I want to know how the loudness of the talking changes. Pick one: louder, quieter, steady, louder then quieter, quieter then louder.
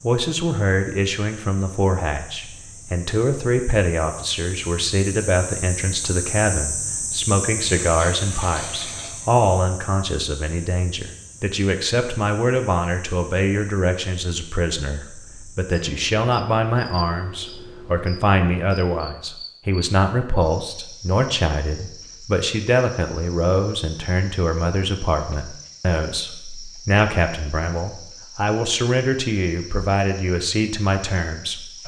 steady.